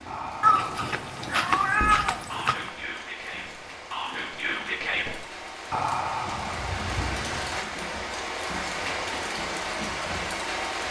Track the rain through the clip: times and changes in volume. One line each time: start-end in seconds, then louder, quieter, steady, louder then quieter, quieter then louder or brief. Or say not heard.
0.0-10.8 louder.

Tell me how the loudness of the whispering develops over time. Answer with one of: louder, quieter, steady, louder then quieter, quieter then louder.
louder.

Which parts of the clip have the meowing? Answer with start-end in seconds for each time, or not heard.
0.4-2.7.